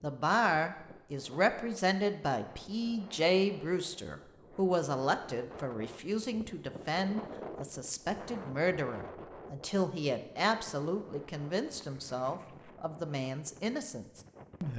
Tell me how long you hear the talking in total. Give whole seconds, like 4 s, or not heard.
15 s.